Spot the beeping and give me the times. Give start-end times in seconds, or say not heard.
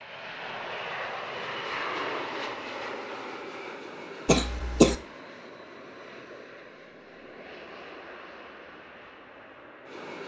not heard.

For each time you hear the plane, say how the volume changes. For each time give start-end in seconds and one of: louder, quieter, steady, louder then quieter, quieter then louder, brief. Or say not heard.
0.0-10.2 quieter.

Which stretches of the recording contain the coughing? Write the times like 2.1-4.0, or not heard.
4.2-5.0.